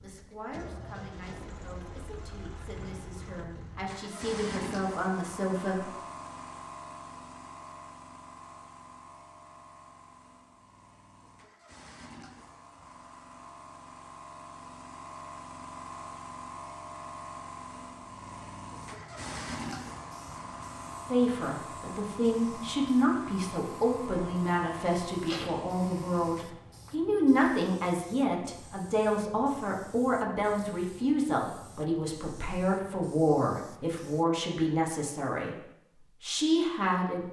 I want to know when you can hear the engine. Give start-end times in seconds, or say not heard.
0.0-26.6.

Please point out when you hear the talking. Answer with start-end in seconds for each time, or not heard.
0.0-5.8, 21.1-35.5, 36.2-37.2.